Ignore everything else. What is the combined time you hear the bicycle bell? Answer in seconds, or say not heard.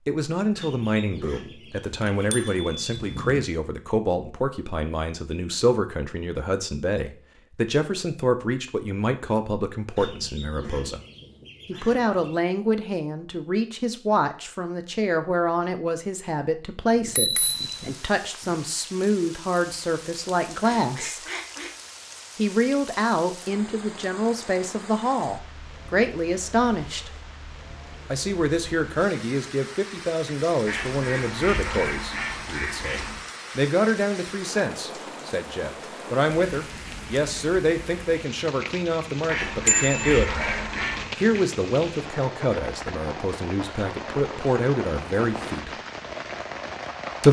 4 s.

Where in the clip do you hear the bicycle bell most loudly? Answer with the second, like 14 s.
40 s.